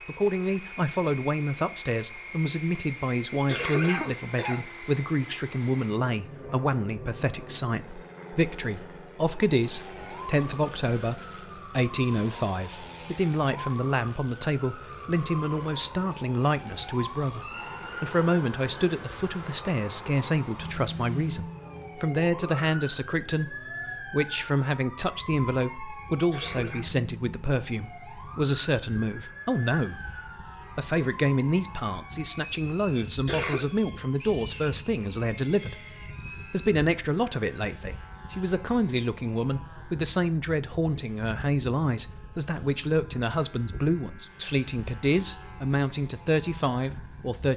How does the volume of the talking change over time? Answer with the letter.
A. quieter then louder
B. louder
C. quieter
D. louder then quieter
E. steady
E.